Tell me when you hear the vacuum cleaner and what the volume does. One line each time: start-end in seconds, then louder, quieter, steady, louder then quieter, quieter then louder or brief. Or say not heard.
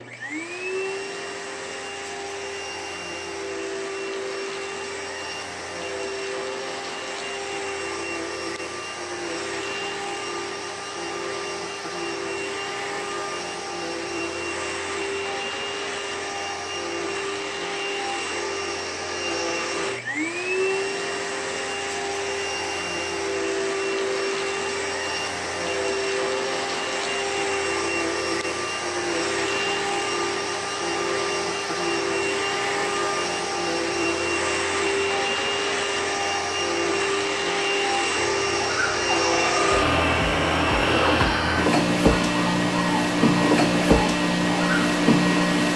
0.0-45.7 louder.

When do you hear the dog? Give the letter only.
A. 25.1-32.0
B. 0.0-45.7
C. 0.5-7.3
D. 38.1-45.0
D.